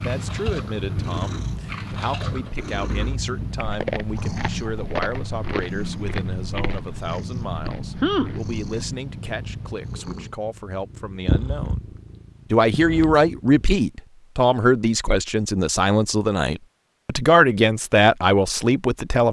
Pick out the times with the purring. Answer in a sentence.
You can hear the purring from 0.0 to 13.8 s.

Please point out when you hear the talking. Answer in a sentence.
The talking can be heard from 0.0 to 11.8 s and from 12.5 to 19.2 s.